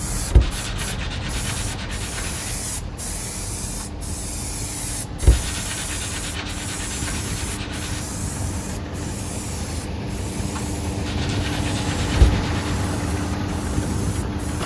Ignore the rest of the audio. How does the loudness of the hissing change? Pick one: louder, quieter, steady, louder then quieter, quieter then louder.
quieter.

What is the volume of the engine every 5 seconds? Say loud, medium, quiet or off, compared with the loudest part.
medium, medium, loud.